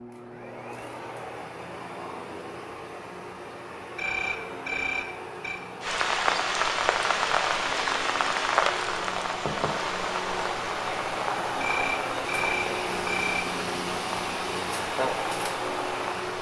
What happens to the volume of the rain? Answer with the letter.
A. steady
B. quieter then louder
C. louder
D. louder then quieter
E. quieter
E.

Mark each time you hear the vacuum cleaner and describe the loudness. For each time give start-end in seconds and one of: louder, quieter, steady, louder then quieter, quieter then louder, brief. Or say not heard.
0.0-16.3 louder.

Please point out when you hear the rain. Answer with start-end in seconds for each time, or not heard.
5.8-16.3.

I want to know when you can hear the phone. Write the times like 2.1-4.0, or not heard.
4.0-5.6, 11.6-13.4.